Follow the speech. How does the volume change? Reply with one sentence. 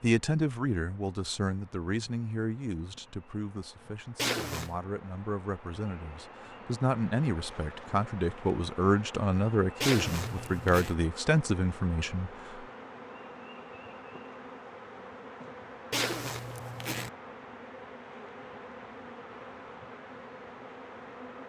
The loudness of the speech goes down, then up.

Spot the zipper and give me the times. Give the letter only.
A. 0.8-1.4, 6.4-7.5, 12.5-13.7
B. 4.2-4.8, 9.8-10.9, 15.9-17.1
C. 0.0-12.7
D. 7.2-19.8
B.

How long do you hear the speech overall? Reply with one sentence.
The speech can be heard for 13 seconds in total.